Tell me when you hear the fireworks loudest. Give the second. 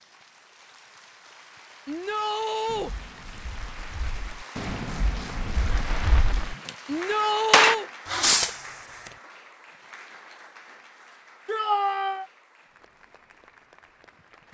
8 s.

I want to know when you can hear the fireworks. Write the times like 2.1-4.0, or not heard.
2.6-6.7, 7.5-8.7.